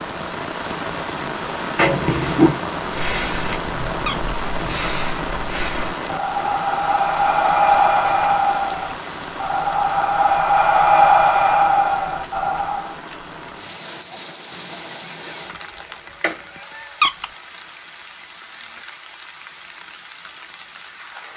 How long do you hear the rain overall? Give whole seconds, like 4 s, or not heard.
21 s.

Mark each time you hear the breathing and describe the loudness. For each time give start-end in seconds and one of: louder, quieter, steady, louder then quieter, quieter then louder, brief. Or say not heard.
2.8-12.9 louder.